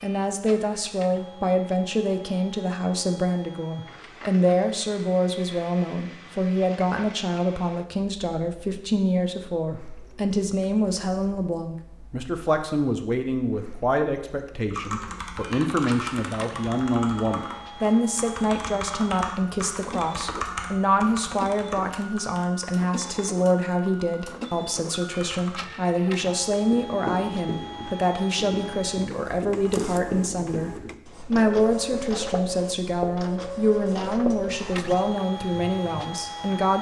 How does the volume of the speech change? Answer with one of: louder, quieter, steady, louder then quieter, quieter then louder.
steady.